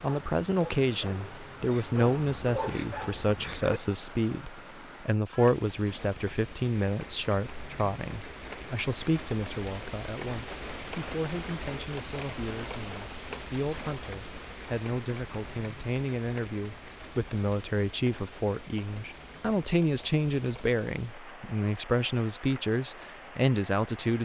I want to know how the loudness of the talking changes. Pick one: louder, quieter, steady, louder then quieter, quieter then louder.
quieter then louder.